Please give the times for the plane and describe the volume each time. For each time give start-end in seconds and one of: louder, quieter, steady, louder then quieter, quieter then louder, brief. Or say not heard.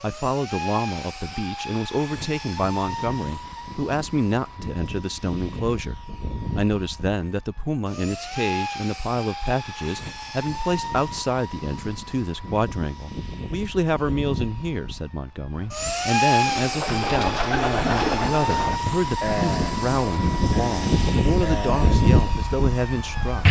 0.0-23.4 louder.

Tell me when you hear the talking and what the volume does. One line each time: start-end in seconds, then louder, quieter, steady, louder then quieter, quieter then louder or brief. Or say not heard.
0.0-23.4 steady.